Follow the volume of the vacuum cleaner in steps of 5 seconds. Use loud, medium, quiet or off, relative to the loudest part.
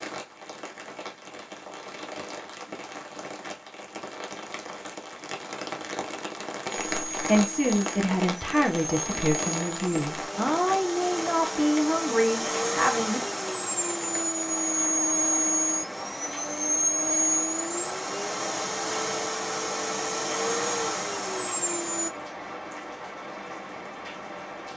off, medium, loud, loud, loud.